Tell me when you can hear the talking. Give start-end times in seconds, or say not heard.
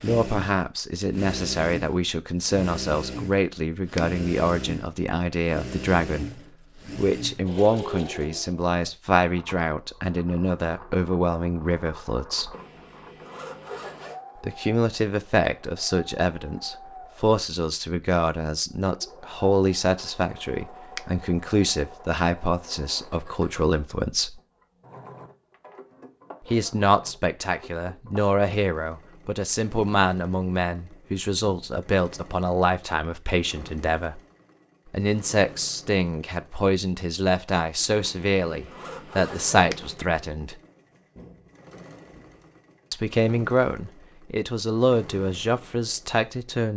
0.0-12.6, 14.4-24.4, 26.4-34.2, 34.9-40.5, 42.9-46.7.